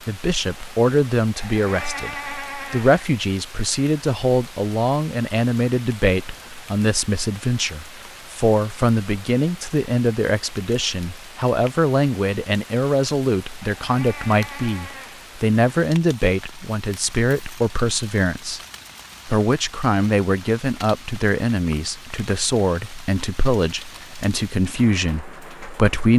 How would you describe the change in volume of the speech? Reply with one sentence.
The loudness of the speech stays about the same.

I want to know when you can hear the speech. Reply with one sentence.
The speech can be heard from 0.1 to 18.6 s and from 19.2 to 26.1 s.